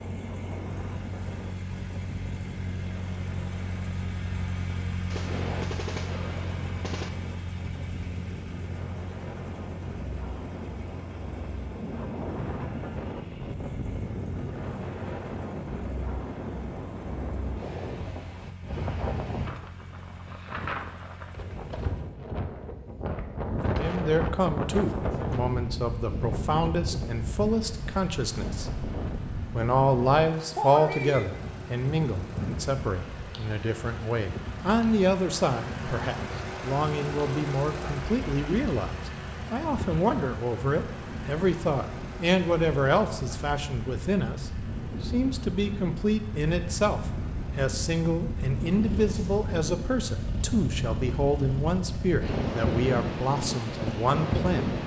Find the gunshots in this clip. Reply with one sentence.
The gunshots can be heard from 5.1 to 7.1 s.